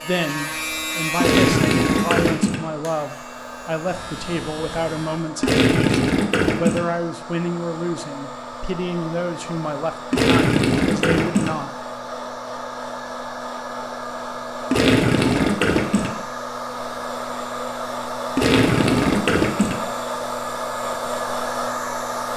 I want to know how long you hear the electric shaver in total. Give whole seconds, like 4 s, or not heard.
5 s.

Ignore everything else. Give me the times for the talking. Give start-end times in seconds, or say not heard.
0.0-11.8.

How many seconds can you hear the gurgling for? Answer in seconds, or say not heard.
7 s.